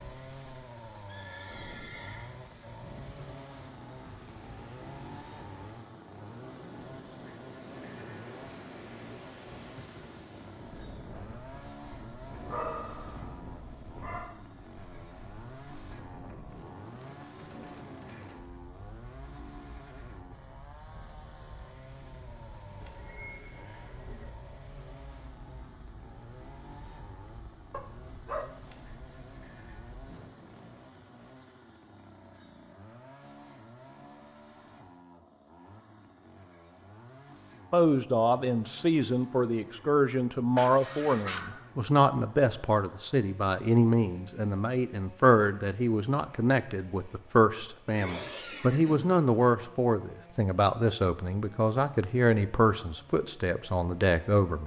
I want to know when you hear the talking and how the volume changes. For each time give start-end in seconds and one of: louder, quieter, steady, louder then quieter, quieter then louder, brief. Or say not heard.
37.7-54.6 steady.